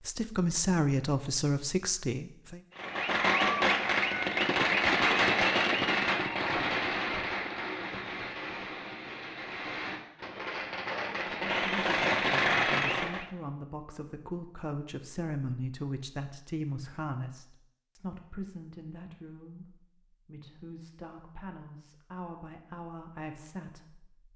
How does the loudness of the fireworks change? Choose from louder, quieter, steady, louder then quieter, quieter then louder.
quieter then louder.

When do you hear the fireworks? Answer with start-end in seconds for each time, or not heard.
2.8-13.3.